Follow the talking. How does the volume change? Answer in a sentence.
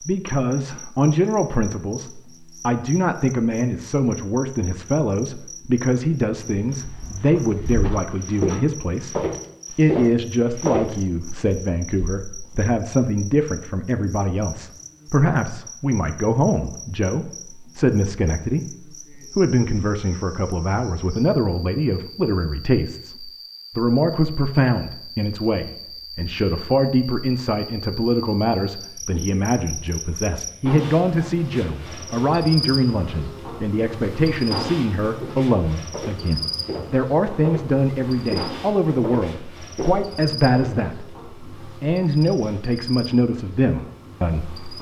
The loudness of the talking stays about the same.